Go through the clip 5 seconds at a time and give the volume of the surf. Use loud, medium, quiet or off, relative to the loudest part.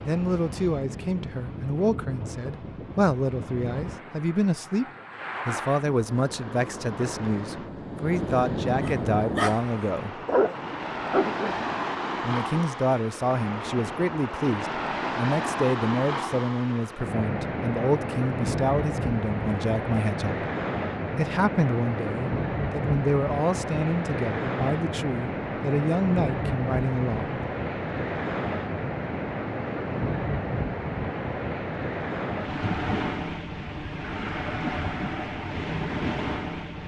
medium, loud, loud, loud, loud, loud, loud, loud.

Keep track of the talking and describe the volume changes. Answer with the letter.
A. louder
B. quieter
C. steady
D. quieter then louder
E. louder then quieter
C.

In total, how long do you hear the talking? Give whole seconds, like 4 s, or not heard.
24 s.